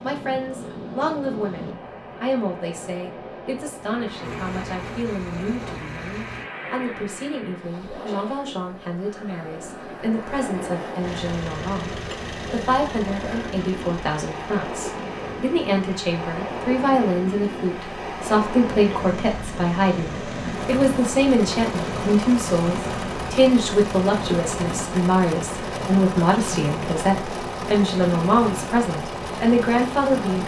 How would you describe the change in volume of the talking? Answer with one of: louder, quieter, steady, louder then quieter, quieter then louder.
louder.